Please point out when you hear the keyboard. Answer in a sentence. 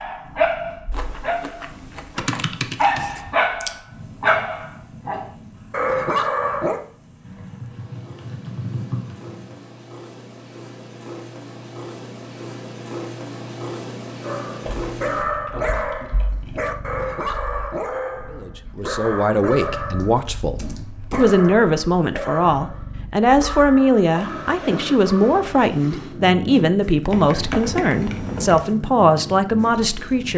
The keyboard can be heard from 2.1 to 3.7 s, from 7.2 to 9.6 s, from 14.7 to 16.6 s, from 19.9 to 21.5 s and from 27.1 to 28.6 s.